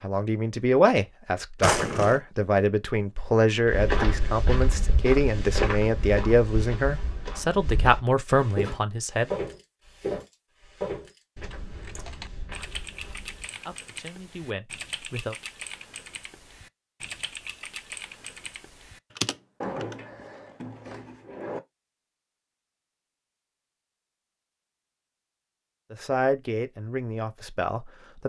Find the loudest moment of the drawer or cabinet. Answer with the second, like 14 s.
2 s.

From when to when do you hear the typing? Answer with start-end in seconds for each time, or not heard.
11.4-19.9.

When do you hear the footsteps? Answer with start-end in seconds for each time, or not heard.
3.6-13.5.